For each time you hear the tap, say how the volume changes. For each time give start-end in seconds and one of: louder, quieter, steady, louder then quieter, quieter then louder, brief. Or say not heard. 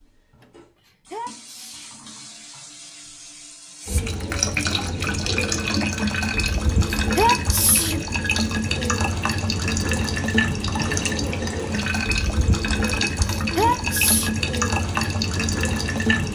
0.0-16.3 louder.